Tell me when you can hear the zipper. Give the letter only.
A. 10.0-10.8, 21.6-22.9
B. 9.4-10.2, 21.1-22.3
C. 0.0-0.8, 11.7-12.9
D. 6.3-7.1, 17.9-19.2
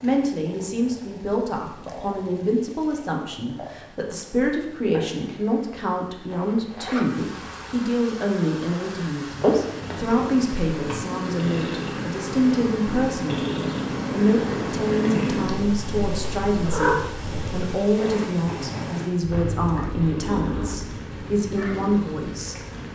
D.